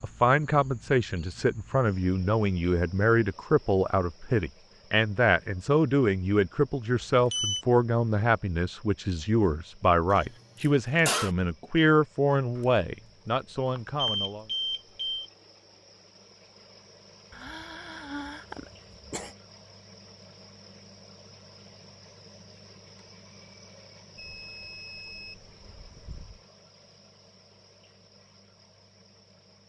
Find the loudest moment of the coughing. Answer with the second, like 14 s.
11 s.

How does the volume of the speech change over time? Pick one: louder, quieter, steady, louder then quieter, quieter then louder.
steady.